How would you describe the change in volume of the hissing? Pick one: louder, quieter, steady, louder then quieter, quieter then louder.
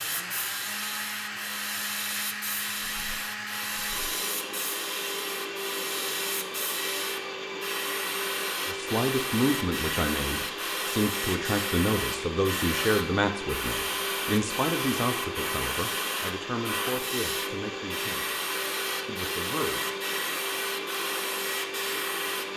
steady.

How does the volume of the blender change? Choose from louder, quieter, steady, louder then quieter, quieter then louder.
steady.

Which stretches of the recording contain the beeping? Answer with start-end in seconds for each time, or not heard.
not heard.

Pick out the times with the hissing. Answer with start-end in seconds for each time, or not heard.
0.0-22.5.